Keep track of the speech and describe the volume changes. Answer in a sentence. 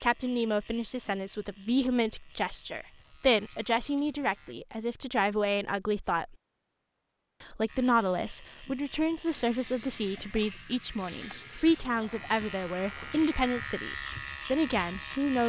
The volume of the speech stays about the same.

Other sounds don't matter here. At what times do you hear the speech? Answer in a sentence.
You can hear the speech from 0.0 to 6.3 s and from 7.4 to 15.4 s.